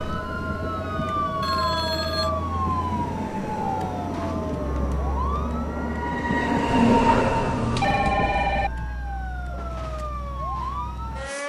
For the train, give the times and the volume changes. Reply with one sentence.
The train can be heard from 0.0 to 8.8 s, getting louder.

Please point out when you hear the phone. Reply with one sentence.
The phone can be heard from 1.4 to 2.3 s and from 6.7 to 8.7 s.